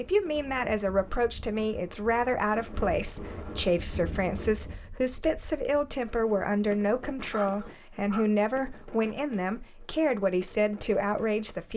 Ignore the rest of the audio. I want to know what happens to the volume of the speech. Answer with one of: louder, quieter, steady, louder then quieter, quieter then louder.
steady.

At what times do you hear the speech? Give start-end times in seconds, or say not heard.
0.0-11.7.